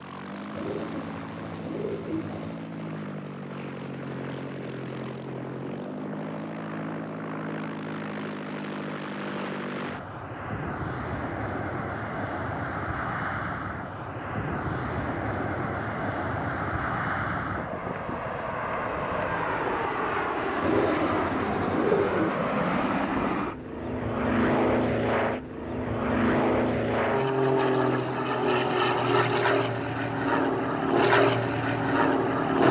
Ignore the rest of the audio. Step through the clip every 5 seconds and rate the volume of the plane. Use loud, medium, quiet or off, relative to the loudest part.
quiet, medium, medium, medium, loud, loud, loud.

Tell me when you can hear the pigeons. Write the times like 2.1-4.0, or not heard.
0.5-2.7, 20.6-22.4.